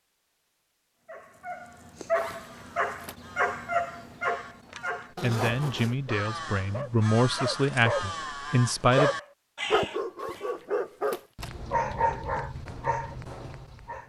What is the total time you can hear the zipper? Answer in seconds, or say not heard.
3 s.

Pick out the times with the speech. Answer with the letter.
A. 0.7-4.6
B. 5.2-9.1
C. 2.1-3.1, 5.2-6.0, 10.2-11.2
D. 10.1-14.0
B.